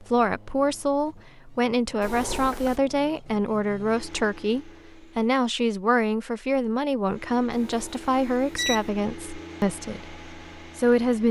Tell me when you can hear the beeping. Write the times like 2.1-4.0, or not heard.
2.0-2.8, 7.5-8.8.